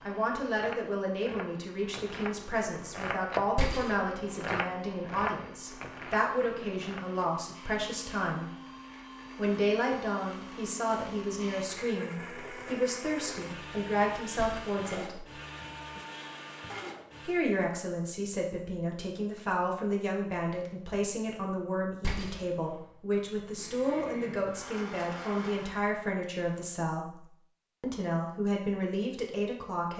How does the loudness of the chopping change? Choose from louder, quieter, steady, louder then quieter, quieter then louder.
louder then quieter.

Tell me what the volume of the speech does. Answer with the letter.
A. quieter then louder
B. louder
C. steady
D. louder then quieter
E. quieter
C.